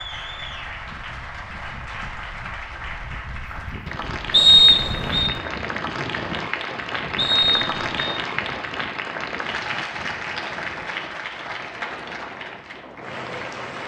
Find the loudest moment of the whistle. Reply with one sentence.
The volume of the whistle peaks at 5 seconds.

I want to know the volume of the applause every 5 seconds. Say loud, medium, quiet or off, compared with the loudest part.
medium, loud, loud.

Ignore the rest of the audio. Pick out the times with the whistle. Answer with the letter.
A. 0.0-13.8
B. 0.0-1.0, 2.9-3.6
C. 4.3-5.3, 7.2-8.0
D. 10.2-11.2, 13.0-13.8
C.